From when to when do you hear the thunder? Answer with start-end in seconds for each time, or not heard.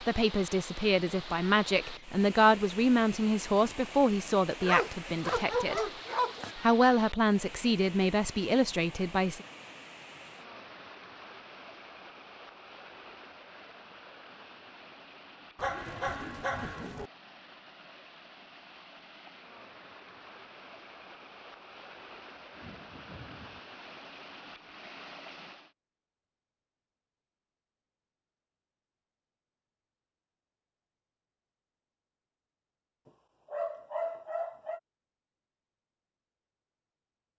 22.4-23.6.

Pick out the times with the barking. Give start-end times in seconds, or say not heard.
4.6-6.5, 15.6-17.1, 33.0-34.8.